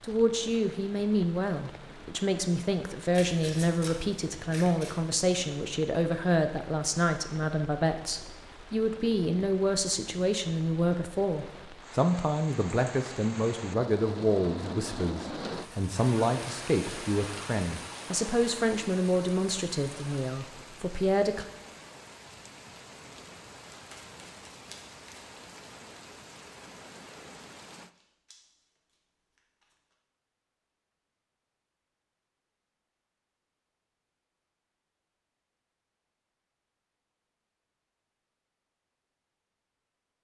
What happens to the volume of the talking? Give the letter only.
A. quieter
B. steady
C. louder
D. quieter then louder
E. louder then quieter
B.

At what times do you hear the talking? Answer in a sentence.
You can hear the talking from 0.0 to 21.4 s.